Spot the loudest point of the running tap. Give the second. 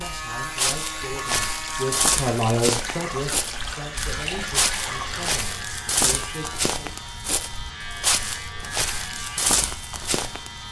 5 s.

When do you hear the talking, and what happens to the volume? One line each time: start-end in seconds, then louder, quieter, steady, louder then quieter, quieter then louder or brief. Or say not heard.
0.0-7.0 louder then quieter.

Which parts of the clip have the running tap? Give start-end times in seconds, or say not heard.
0.0-5.4.